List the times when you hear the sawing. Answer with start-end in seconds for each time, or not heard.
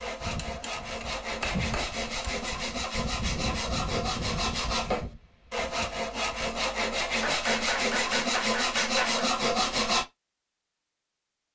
0.0-10.1.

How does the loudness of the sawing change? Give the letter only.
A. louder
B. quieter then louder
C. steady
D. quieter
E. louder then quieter
A.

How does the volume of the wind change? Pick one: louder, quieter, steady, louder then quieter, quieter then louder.
louder then quieter.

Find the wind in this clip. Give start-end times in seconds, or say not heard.
0.0-6.5.